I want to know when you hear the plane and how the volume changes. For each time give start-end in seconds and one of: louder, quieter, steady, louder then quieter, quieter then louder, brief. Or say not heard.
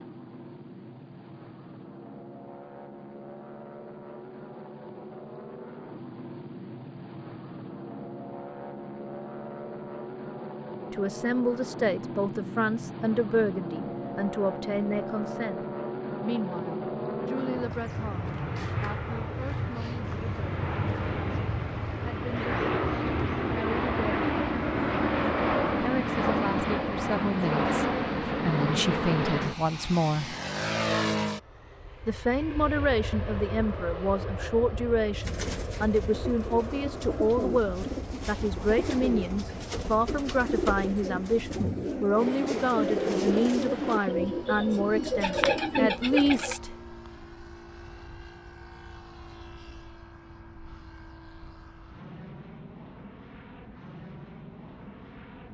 0.0-55.4 louder then quieter.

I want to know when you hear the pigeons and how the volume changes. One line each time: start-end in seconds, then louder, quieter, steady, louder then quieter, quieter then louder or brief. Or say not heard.
35.1-46.6 louder.